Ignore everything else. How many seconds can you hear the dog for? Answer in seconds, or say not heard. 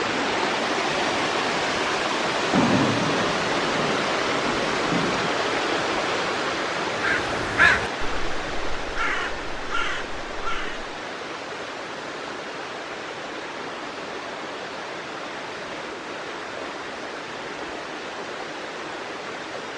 not heard.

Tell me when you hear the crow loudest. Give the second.
8 s.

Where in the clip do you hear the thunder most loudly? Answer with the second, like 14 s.
3 s.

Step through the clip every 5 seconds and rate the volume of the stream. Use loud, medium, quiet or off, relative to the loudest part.
loud, loud, medium, medium.